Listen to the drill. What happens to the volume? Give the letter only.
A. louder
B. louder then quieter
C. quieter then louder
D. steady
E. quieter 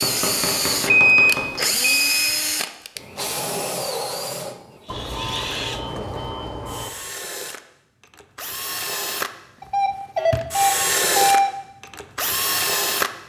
C.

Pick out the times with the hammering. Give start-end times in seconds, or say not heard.
0.0-1.6.